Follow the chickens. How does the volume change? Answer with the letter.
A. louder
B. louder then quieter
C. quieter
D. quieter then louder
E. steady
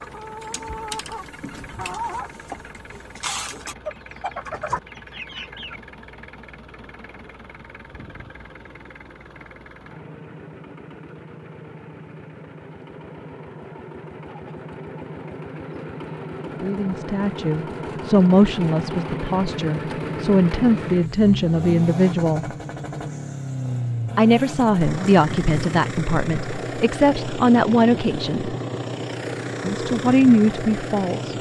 E.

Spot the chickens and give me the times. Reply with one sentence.
You can hear the chickens from 0.0 to 5.8 s.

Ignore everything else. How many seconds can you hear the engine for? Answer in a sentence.
You can hear the engine for 31 seconds altogether.